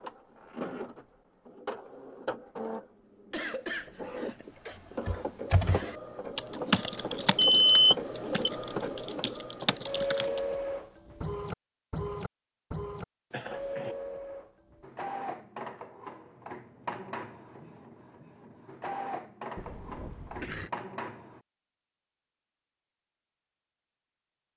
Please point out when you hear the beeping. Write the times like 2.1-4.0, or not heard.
7.3-8.5.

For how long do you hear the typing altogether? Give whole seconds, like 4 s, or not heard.
5 s.